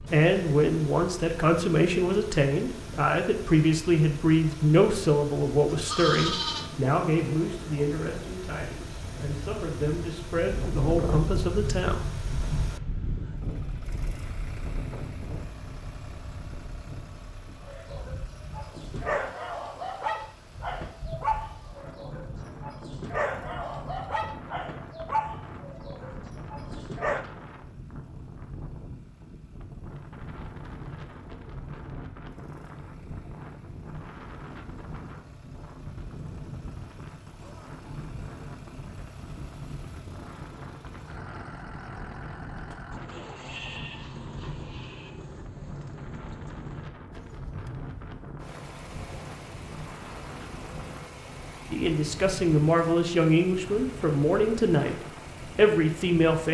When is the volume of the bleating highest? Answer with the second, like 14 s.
6 s.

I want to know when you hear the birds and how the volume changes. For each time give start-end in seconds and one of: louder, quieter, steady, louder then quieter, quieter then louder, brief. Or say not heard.
not heard.